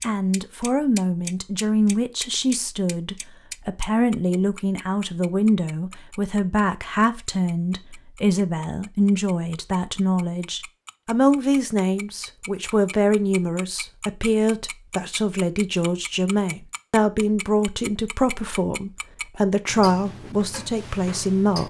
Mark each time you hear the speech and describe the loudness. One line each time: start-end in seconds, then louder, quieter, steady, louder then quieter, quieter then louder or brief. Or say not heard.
0.0-21.6 steady.